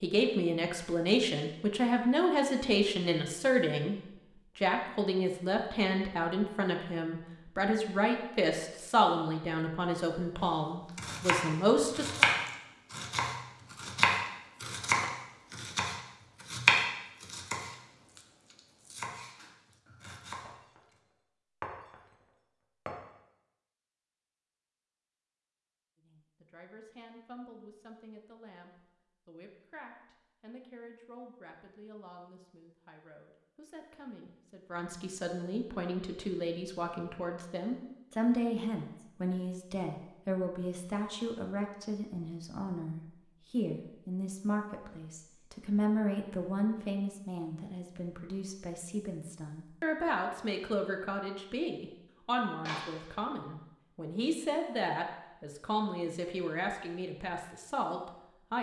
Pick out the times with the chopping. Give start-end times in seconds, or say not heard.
10.9-20.5.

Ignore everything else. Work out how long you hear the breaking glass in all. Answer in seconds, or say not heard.
3 s.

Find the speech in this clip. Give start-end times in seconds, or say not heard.
0.0-4.0, 4.5-12.2, 26.0-58.5.